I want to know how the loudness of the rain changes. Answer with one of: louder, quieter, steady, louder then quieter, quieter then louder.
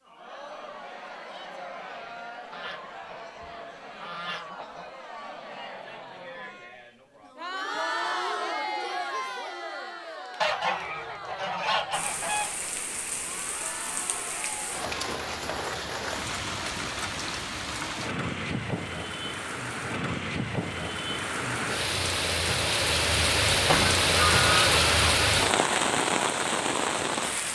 louder.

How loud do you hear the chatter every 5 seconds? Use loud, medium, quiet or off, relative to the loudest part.
medium, loud, medium, off, off, off.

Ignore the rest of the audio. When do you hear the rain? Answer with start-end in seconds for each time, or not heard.
11.9-27.5.